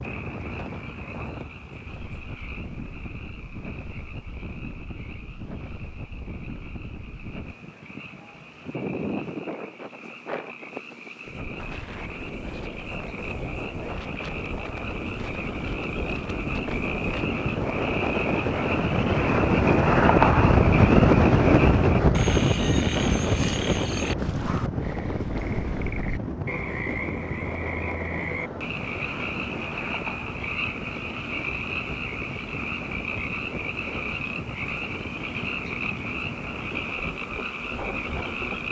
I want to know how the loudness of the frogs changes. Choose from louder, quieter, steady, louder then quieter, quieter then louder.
louder.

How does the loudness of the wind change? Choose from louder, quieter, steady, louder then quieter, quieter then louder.
louder then quieter.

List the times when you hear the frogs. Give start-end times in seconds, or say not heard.
0.0-38.6.